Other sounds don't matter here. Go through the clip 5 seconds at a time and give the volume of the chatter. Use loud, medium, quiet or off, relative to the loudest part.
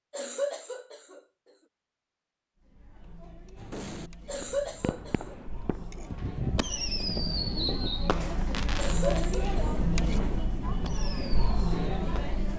quiet, loud, loud.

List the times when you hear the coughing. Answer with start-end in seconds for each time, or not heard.
0.1-1.2, 4.2-5.3, 8.8-9.8.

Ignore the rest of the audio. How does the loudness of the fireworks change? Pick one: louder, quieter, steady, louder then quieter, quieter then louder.
louder then quieter.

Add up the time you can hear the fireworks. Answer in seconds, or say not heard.
9 s.